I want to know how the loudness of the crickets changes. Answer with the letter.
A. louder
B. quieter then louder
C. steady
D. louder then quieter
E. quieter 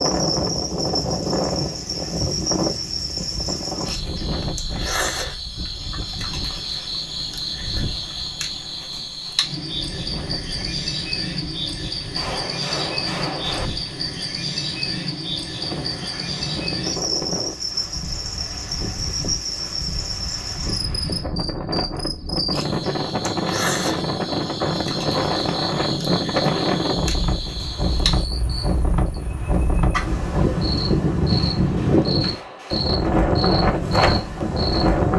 C.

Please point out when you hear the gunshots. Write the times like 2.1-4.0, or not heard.
12.2-13.7, 31.3-32.9.